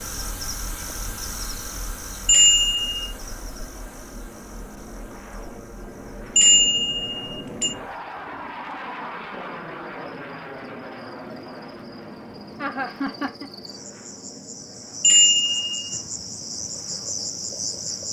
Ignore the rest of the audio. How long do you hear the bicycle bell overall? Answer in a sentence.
You can hear the bicycle bell for 3 seconds altogether.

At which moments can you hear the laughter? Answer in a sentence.
The laughter can be heard from 12.6 to 13.5 s.